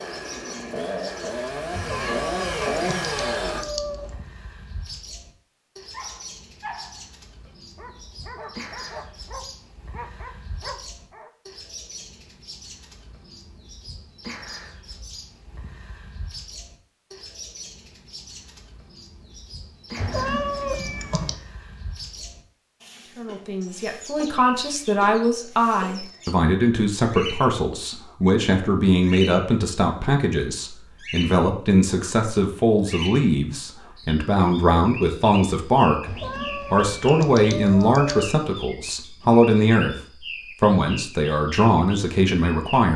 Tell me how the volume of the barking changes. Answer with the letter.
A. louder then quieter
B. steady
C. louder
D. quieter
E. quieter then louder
E.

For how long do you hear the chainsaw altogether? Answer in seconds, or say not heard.
4 s.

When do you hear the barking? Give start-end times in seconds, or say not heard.
5.9-11.3.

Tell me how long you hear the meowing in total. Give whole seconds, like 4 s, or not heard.
6 s.